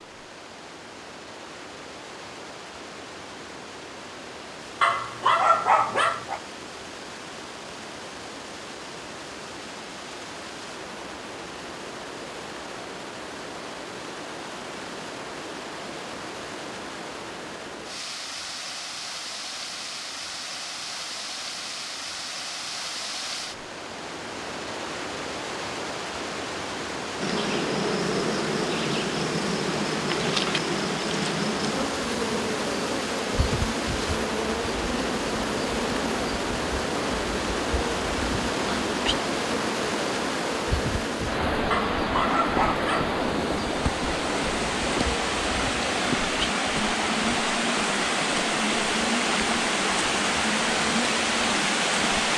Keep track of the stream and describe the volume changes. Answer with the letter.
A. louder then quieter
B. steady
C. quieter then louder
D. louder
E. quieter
D.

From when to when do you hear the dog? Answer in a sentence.
The dog can be heard from 4.8 to 6.4 s and from 41.7 to 43.1 s.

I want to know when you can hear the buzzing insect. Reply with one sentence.
You can hear the buzzing insect from 27.2 to 52.3 s.